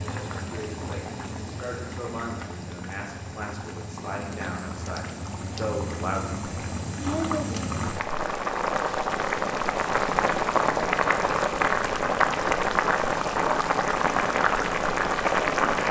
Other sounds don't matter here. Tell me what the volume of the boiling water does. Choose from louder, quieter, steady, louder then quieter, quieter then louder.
louder.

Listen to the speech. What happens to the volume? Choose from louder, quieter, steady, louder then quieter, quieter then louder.
louder.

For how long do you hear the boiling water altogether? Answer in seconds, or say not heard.
16 s.